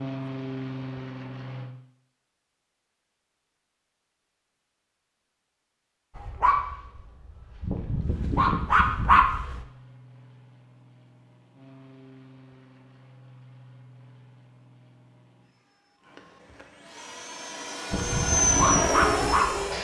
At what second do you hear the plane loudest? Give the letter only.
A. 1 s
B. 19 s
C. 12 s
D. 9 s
B.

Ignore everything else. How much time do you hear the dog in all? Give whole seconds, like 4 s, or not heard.
5 s.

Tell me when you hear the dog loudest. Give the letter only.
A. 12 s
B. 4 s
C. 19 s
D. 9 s
D.